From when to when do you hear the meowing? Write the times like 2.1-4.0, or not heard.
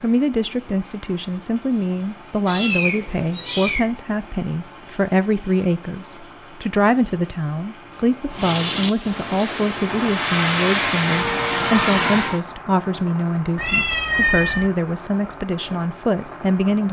2.5-3.9, 13.6-14.7.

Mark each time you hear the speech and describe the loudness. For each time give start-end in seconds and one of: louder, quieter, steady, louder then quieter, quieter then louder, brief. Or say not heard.
0.0-16.8 steady.